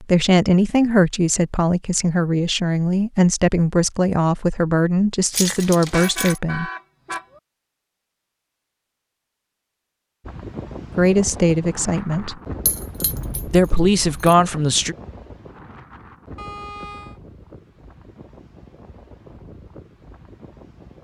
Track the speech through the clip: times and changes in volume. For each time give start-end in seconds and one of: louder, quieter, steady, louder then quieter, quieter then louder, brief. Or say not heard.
0.0-6.7 steady
10.9-12.3 brief
13.5-14.9 brief.